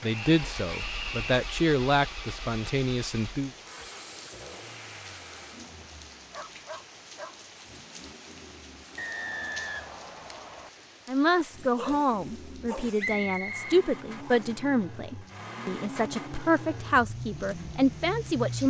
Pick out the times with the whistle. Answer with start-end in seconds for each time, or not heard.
0.1-1.4, 8.9-10.7, 12.9-14.5.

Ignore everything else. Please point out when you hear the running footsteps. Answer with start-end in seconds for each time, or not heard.
not heard.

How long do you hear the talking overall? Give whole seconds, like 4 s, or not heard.
11 s.